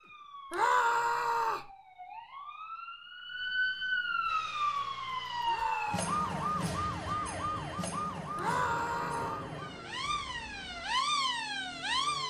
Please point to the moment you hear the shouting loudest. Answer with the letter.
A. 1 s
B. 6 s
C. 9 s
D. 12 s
A.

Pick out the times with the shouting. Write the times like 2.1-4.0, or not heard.
0.5-1.7, 5.5-6.6, 8.3-9.4.